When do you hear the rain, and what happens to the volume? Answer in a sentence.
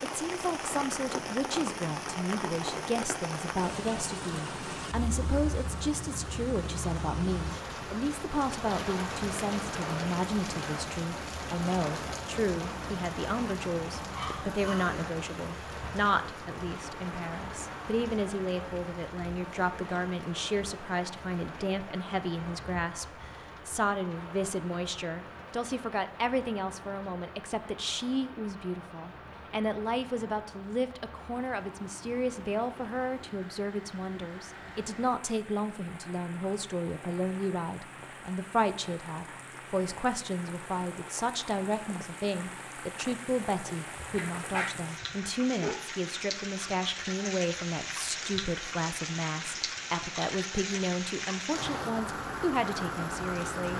The rain can be heard from 0.0 to 53.7 s, getting quieter then louder.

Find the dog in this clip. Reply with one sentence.
You can hear the dog from 14.1 to 14.9 s and from 44.1 to 45.9 s.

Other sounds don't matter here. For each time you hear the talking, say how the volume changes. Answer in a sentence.
The talking can be heard from 0.0 to 53.7 s, at a steady volume.